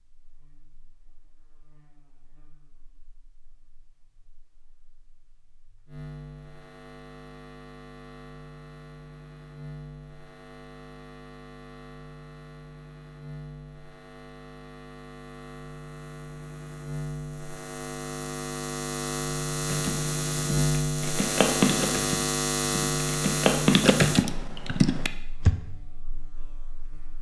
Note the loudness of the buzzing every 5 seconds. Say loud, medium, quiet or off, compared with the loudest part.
quiet, quiet, quiet, medium, loud, quiet.